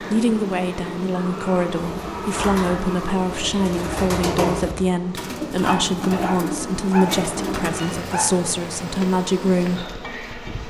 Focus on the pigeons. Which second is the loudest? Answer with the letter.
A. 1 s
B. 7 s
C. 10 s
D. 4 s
D.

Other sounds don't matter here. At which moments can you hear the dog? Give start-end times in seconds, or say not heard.
1.1-3.1, 5.6-8.3.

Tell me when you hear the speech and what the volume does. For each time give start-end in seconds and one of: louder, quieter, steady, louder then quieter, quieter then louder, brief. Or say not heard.
0.0-9.9 steady.